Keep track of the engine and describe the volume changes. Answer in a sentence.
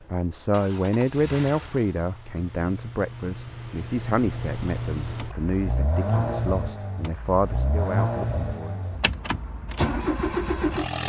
The volume of the engine goes up.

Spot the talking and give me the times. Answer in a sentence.
You can hear the talking from 0.1 to 8.9 s.